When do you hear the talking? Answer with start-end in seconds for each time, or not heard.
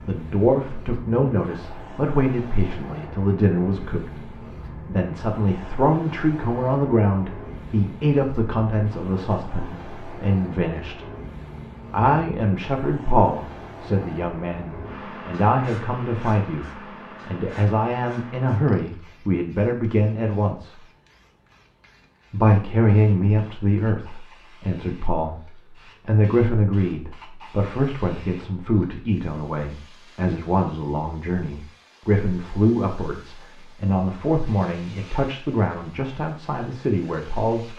0.0-11.1, 11.9-20.8, 22.3-37.7.